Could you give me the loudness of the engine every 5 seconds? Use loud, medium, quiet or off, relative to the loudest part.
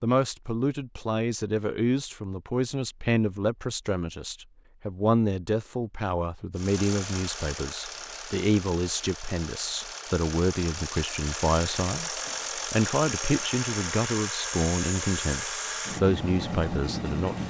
off, medium, loud, loud.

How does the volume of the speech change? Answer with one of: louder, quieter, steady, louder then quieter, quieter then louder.
steady.